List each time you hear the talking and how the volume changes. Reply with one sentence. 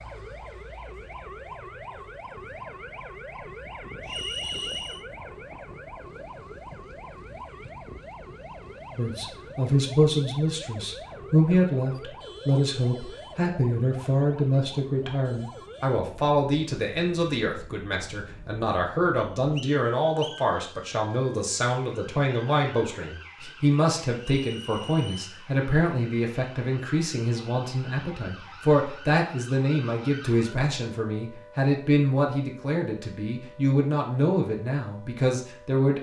The talking can be heard from 8.9 to 35.9 s, at a steady volume.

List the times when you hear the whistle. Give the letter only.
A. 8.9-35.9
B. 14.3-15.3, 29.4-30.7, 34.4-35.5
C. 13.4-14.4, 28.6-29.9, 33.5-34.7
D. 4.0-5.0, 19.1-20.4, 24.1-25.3
D.